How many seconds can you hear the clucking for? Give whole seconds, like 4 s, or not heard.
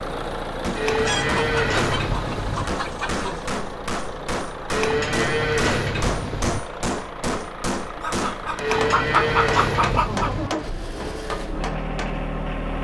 5 s.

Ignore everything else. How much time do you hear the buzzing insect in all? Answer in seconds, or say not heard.
not heard.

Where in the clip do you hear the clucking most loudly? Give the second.
9 s.